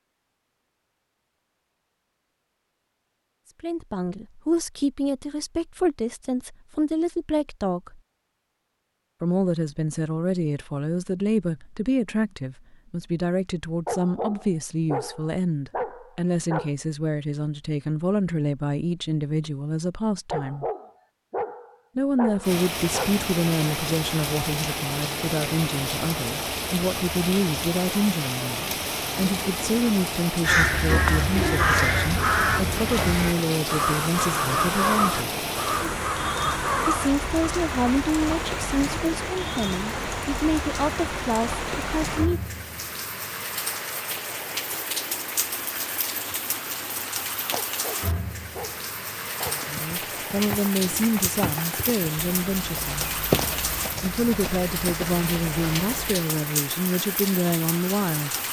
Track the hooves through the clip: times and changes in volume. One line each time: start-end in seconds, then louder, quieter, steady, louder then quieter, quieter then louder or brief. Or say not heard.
49.2-56.2 louder then quieter.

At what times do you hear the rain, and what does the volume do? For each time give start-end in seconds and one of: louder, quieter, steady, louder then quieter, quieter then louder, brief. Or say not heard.
22.4-58.4 steady.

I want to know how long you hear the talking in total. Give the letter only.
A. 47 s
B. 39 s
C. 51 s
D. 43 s
D.